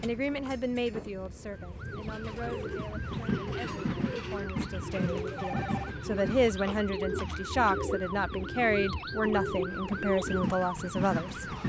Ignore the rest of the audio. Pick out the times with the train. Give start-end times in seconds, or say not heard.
0.0-11.6.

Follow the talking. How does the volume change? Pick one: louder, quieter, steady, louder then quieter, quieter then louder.
quieter then louder.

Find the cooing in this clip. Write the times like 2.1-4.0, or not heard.
1.8-10.4.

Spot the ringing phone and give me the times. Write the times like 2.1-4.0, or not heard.
5.0-5.9.